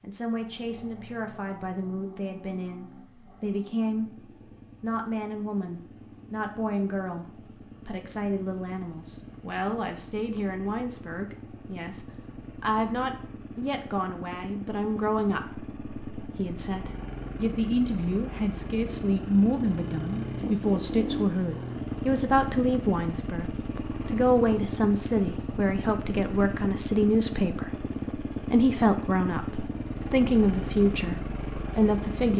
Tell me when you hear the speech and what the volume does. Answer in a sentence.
The speech can be heard from 0.0 to 32.3 s, getting louder.